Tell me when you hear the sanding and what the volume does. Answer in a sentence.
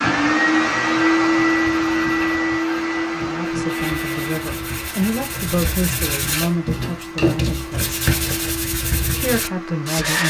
You can hear the sanding from 0.0 to 10.2 s, getting louder.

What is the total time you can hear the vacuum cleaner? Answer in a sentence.
You can hear the vacuum cleaner for 10 seconds altogether.